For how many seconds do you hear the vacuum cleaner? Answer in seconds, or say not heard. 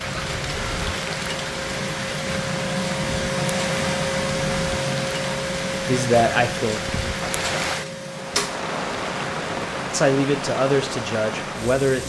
12 s.